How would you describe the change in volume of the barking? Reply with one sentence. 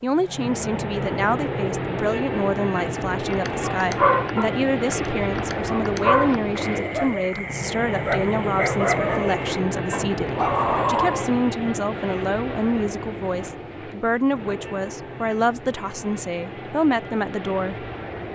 The volume of the barking goes down, then up.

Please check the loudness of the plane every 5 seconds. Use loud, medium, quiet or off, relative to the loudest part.
loud, loud, loud, medium.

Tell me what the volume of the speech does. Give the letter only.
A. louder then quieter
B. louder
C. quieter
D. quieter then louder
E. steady
E.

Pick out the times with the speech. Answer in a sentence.
The speech can be heard from 0.0 to 17.9 s.